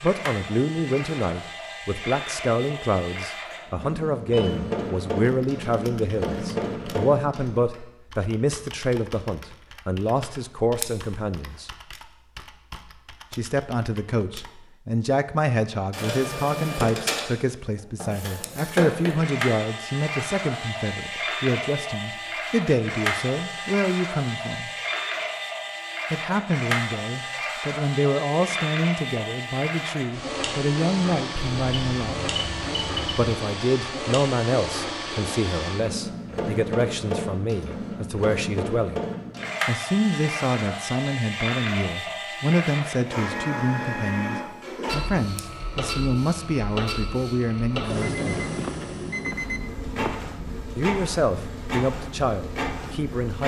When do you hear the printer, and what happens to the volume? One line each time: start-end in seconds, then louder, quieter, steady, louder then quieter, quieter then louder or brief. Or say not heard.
0.0-7.8 louder
15.7-53.4 steady.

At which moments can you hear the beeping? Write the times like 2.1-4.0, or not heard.
4.3-5.0, 31.4-33.4, 48.0-50.2.